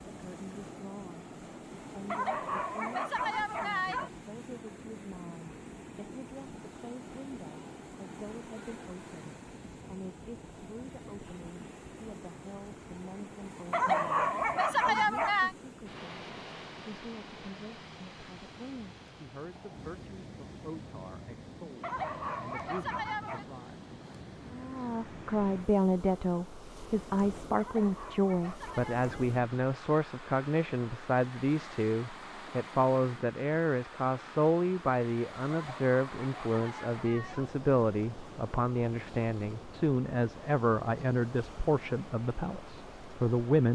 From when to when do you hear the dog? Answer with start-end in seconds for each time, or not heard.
2.1-4.1, 13.7-15.6, 21.8-23.4, 27.6-29.3, 35.5-37.5.